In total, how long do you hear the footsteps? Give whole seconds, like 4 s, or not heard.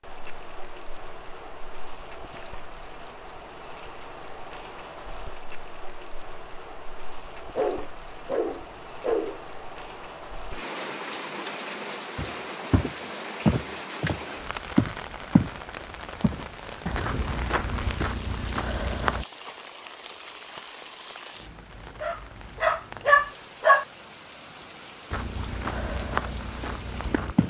9 s.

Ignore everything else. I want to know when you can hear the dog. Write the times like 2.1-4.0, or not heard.
7.5-9.4, 22.0-23.9.